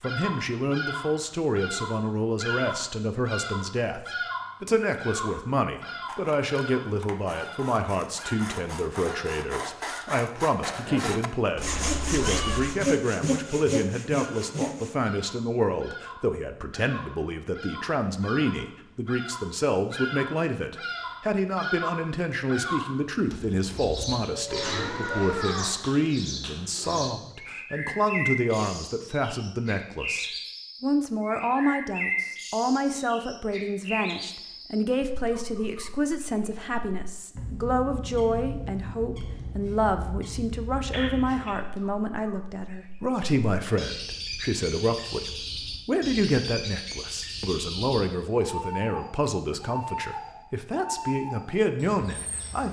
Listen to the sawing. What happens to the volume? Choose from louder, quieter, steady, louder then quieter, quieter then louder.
louder.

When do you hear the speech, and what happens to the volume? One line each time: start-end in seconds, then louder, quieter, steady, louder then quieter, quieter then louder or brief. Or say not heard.
0.0-52.6 steady.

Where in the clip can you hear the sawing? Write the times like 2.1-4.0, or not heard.
5.8-15.1.